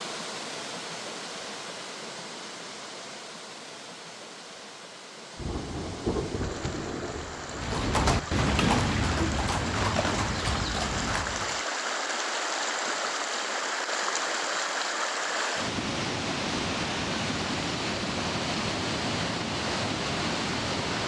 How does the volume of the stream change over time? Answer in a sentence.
The volume of the stream goes up.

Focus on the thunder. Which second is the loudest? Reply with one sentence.
The volume of the thunder peaks at 6 seconds.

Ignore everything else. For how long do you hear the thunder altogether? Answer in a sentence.
The thunder can be heard for 3 seconds in total.